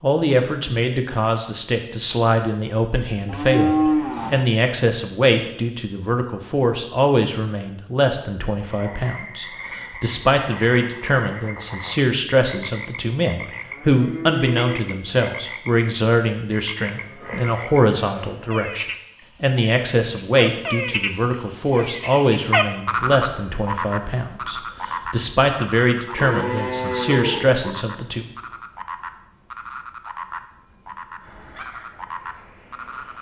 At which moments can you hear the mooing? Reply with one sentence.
You can hear the mooing from 3.2 to 4.5 s, from 13.3 to 14.8 s, from 16.8 to 18.4 s and from 26.1 to 27.6 s.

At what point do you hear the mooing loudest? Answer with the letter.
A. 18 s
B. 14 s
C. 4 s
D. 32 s
C.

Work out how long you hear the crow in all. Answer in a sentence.
The crow can be heard for 2 seconds in total.